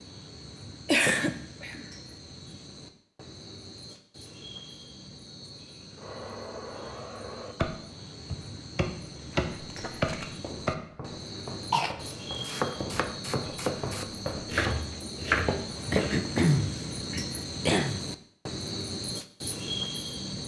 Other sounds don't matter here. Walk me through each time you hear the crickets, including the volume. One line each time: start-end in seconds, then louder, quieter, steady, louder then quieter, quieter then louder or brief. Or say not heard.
0.0-20.4 louder.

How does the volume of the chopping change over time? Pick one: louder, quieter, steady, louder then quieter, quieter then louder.
louder.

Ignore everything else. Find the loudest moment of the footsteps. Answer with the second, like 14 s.
16 s.